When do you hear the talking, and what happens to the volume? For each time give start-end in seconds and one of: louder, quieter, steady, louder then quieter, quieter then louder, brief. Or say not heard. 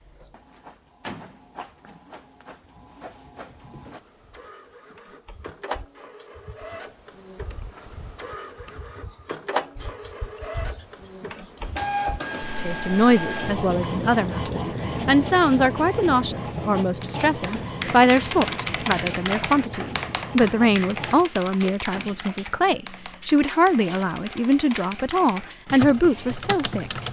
12.6-27.0 steady.